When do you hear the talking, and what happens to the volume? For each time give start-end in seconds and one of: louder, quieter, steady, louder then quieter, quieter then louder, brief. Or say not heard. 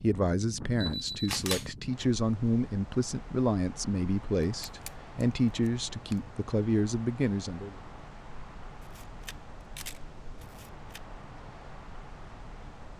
0.0-7.8 steady.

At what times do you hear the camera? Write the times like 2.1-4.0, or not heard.
0.8-1.7, 4.7-6.2, 8.8-11.0.